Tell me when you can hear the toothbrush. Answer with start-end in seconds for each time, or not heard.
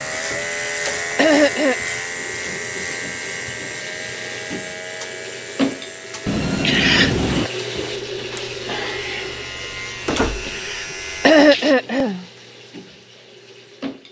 not heard.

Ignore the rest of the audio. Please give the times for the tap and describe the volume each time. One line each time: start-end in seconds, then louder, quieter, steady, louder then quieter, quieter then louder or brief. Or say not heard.
0.0-14.0 louder then quieter.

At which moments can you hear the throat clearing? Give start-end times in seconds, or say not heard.
0.4-1.8, 6.6-7.5, 10.4-12.2.